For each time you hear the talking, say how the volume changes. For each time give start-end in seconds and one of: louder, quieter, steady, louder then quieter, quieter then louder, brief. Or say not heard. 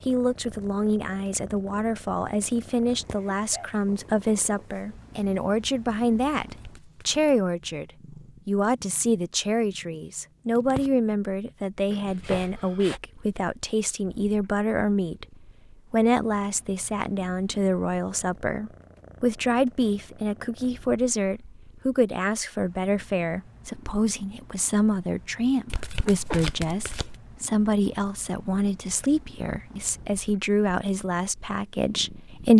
0.1-15.2 steady
15.9-32.5 steady.